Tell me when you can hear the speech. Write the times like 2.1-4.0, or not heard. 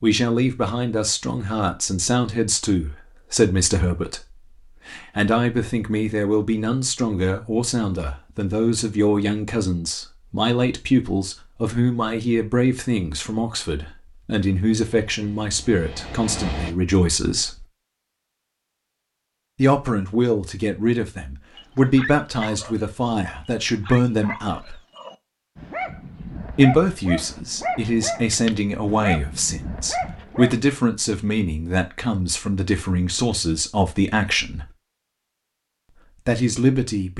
0.0-17.6, 19.6-24.8, 26.6-34.7, 36.2-37.1.